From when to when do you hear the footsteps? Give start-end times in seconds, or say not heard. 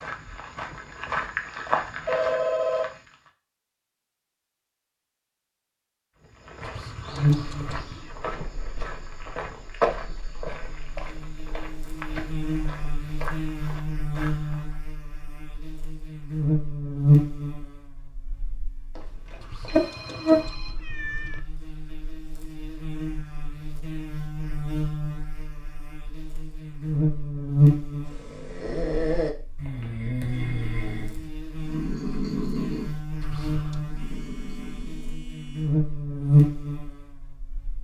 0.0-3.1, 6.2-14.8.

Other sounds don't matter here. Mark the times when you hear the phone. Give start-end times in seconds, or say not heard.
2.0-2.9, 18.9-20.8, 34.0-35.8.